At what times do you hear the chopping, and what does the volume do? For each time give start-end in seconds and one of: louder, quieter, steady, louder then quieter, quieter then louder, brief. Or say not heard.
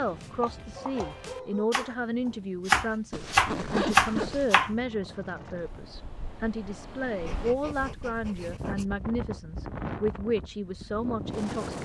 0.0-4.7 louder.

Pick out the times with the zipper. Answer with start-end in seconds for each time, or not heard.
3.1-4.5.